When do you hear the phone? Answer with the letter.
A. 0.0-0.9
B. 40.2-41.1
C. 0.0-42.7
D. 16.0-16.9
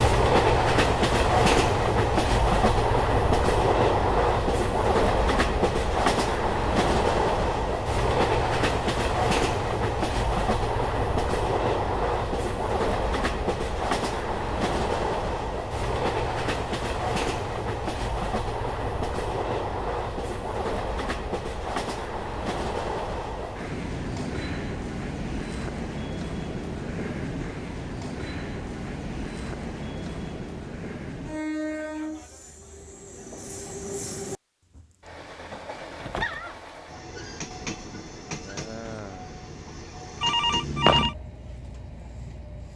B.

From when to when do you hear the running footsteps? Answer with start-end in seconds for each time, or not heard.
not heard.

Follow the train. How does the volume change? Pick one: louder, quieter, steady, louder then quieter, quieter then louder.
quieter.